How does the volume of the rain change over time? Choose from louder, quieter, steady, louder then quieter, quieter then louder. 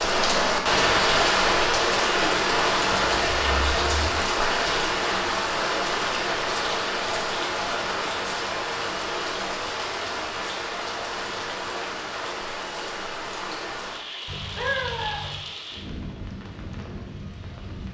quieter.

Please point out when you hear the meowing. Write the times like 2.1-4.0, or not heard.
2.9-4.1, 14.2-15.4.